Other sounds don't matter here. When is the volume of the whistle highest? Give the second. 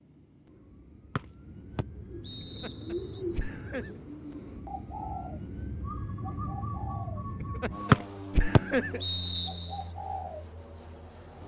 8 s.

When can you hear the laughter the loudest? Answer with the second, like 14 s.
9 s.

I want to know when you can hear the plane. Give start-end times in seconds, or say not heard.
0.0-11.4.